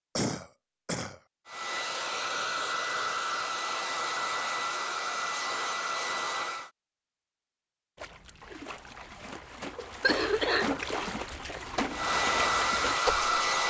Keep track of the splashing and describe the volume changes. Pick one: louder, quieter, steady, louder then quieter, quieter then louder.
louder.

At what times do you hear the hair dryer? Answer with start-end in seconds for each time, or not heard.
1.4-6.7, 11.9-13.6.